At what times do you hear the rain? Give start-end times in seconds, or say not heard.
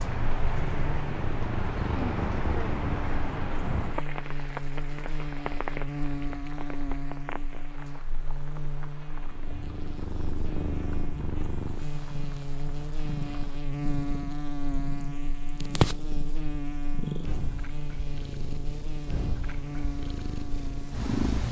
0.0-13.6.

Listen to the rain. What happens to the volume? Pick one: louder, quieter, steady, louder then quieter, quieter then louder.
quieter.